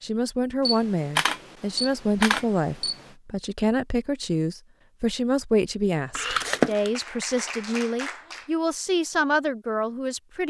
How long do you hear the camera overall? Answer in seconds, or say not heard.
3 s.